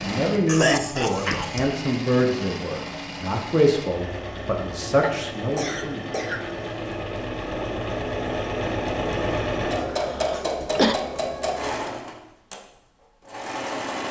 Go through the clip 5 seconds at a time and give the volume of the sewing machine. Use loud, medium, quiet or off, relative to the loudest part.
medium, loud, loud.